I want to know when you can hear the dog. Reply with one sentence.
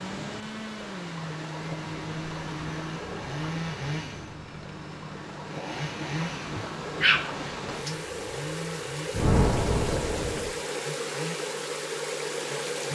The dog can be heard from 6.5 to 8.0 s.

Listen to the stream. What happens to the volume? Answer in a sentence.
The loudness of the stream goes up.